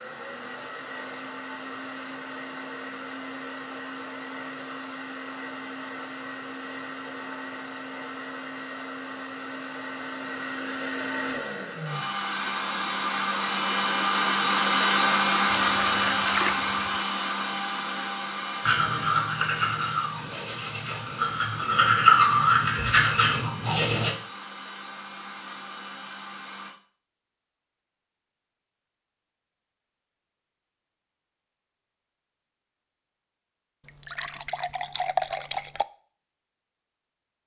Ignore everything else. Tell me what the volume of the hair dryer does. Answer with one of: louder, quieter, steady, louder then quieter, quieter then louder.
louder then quieter.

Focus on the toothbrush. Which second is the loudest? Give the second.
22 s.